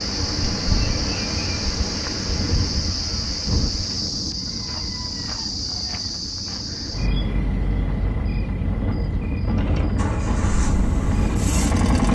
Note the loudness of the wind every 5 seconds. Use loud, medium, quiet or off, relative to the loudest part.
loud, medium, loud.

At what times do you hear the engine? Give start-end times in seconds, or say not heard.
9.5-12.1.